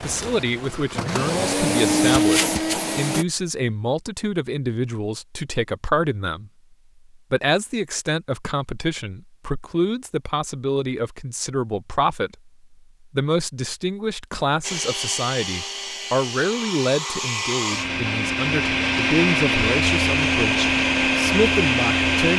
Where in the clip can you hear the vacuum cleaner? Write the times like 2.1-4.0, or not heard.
0.0-3.2, 14.6-22.3.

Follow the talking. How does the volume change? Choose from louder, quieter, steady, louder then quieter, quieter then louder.
steady.